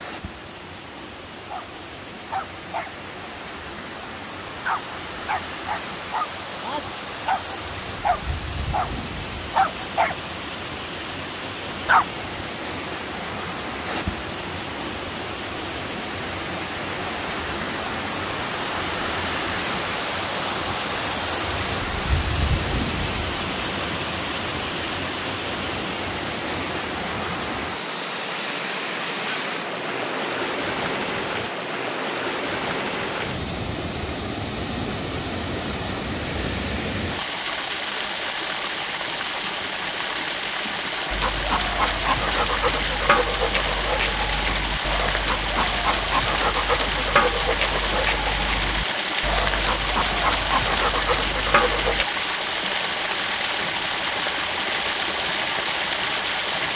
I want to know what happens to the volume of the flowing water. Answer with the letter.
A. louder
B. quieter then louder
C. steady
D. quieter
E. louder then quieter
A.